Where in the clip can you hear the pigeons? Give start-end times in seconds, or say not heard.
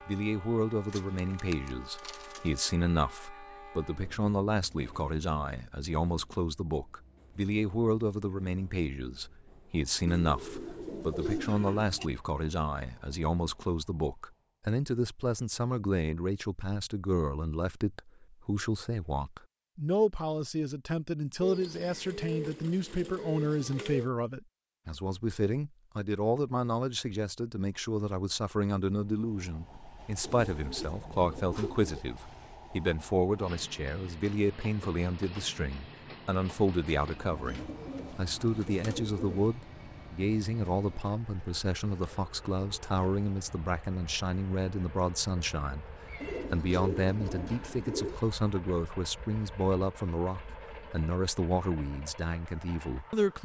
0.9-2.6, 10.1-12.1, 21.4-24.1, 30.2-32.0, 37.3-39.5, 46.2-48.2.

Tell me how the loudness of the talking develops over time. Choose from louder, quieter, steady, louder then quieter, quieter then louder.
steady.